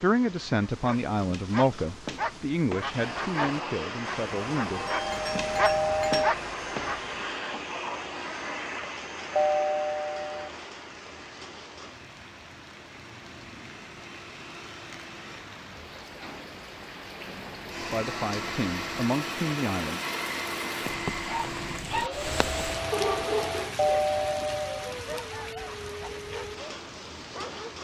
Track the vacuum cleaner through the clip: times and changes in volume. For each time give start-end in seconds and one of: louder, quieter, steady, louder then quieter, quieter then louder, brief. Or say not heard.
2.9-15.5 quieter
17.6-23.7 steady.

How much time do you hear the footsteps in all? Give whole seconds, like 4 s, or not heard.
not heard.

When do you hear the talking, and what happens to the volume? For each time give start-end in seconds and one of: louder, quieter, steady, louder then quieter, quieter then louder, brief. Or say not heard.
0.0-4.8 quieter
17.8-20.0 brief.